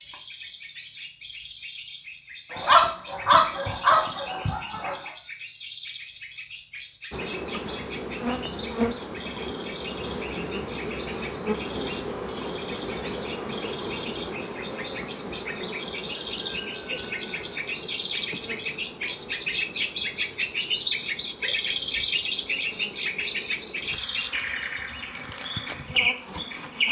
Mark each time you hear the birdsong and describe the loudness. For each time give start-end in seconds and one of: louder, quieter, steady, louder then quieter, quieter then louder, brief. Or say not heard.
0.0-26.8 louder.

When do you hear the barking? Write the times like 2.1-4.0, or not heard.
2.5-5.1.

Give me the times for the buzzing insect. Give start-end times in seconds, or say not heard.
7.1-26.8.